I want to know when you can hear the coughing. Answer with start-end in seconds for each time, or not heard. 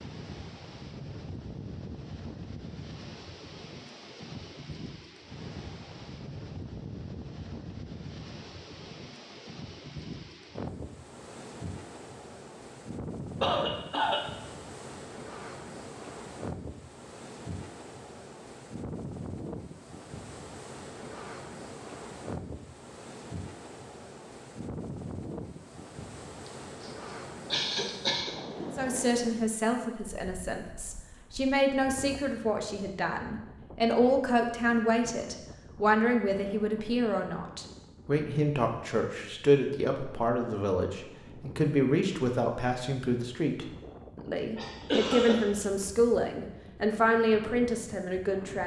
13.4-14.2, 26.4-26.9, 27.5-28.4, 44.5-45.6.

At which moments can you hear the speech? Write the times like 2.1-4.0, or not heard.
28.8-48.6.